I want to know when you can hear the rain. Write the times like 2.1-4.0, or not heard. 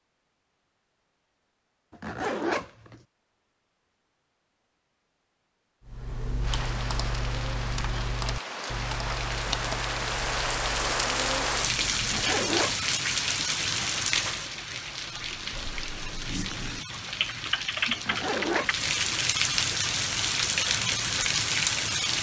6.4-22.1.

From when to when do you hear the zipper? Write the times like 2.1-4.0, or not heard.
1.9-3.0, 12.0-12.9, 17.9-18.9.